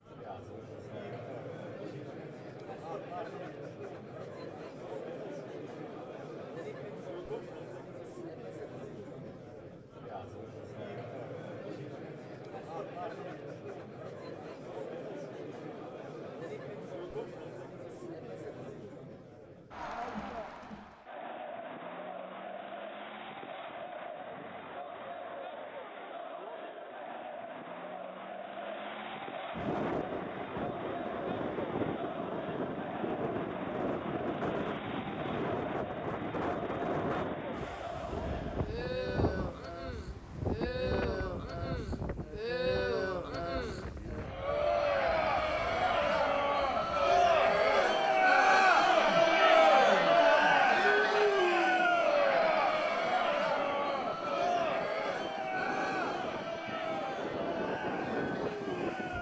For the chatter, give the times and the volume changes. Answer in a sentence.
You can hear the chatter from 0.0 to 59.1 s, getting louder.